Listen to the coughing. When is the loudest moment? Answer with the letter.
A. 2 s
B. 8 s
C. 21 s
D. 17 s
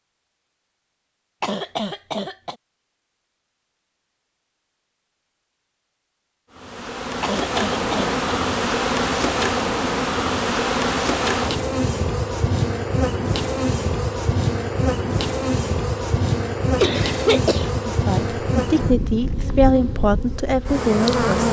D.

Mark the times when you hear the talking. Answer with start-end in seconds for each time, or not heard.
17.9-21.4.